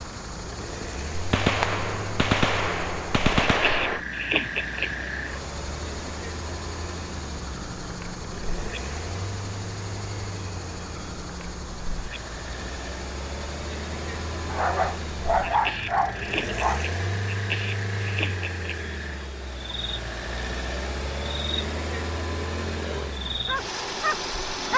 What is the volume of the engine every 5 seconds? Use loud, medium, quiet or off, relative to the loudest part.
medium, medium, medium, loud, loud.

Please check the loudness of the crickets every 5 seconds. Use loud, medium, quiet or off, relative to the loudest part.
loud, medium, medium, loud, loud.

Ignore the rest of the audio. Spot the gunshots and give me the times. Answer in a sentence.
You can hear the gunshots from 1.1 to 4.0 s.